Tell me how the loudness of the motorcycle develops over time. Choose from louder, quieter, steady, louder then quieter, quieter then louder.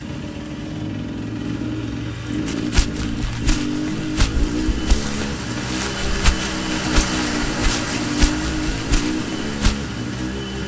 steady.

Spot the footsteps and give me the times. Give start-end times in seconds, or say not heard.
2.5-9.8.